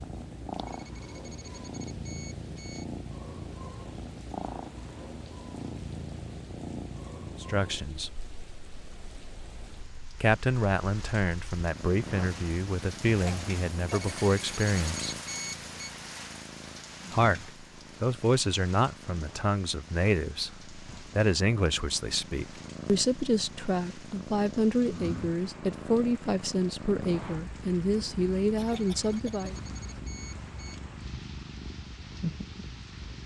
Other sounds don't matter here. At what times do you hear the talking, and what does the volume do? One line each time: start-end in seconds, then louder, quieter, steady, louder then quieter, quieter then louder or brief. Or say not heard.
7.4-8.2 brief
10.2-15.2 steady
17.1-29.6 steady.